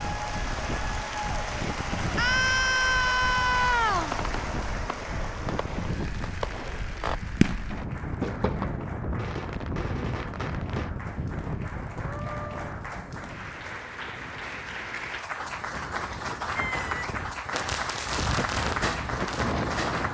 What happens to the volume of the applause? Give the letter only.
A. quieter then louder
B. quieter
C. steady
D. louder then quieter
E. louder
A.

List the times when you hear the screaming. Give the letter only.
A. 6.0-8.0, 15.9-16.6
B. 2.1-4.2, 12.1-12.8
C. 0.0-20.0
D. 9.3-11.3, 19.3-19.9
B.